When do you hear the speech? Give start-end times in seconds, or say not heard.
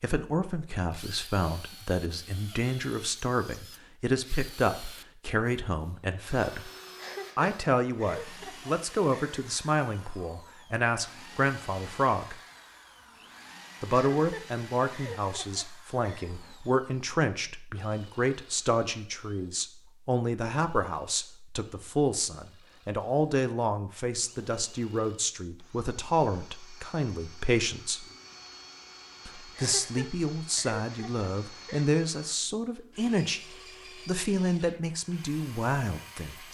0.0-6.7, 7.3-12.3, 13.8-28.1, 29.2-33.4, 34.0-36.4.